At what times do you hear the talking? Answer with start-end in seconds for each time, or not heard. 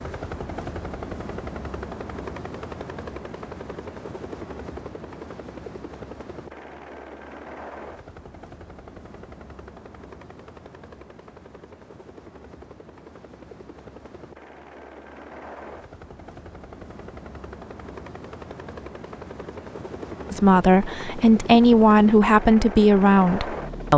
20.3-23.9.